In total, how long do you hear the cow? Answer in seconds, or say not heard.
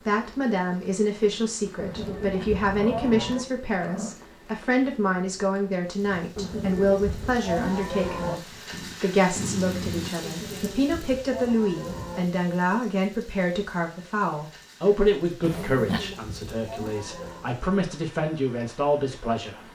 8 s.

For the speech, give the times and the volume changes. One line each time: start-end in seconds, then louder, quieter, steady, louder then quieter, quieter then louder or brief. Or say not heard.
0.1-19.7 steady.